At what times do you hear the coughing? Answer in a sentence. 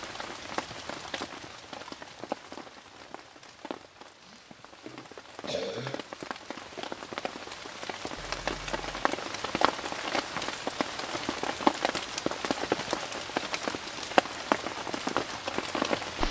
You can hear the coughing from 4.2 to 6.0 s.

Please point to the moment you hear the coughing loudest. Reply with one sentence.
The volume of the coughing peaks at 6 seconds.